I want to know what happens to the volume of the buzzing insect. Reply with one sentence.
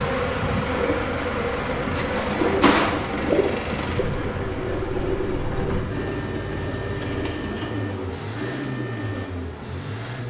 The volume of the buzzing insect goes down.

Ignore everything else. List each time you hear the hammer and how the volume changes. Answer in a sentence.
The hammer can't be heard in this clip.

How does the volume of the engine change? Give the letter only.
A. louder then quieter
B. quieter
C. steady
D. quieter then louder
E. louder
C.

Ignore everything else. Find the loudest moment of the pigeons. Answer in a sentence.
The loudest moment of the pigeons is at 3 seconds.